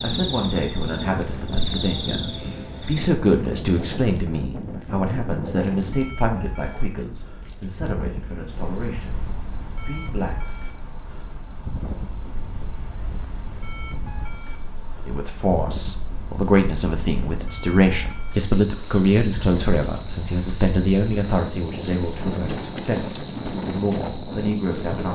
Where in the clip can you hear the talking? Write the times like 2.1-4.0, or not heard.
0.0-10.6, 15.1-25.1.